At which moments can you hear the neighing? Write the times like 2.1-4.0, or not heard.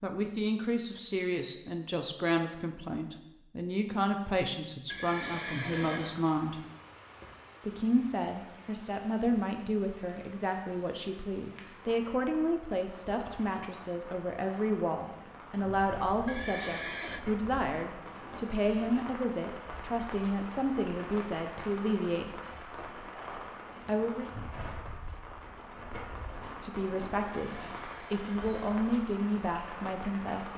4.8-6.2, 16.2-17.2, 27.2-28.9.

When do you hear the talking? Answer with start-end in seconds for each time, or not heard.
0.0-6.6, 7.6-22.4, 23.9-24.3, 26.3-30.5.